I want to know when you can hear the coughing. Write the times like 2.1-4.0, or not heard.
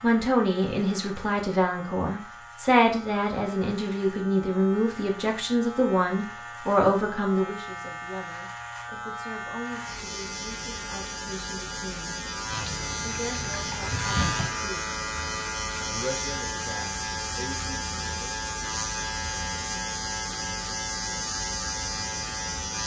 not heard.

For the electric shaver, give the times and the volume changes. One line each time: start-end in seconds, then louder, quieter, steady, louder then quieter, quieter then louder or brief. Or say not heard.
0.0-22.8 louder.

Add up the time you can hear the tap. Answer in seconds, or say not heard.
2 s.